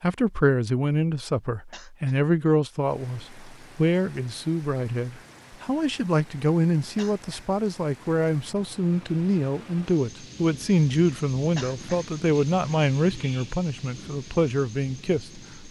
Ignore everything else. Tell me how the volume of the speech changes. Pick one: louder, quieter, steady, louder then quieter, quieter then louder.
steady.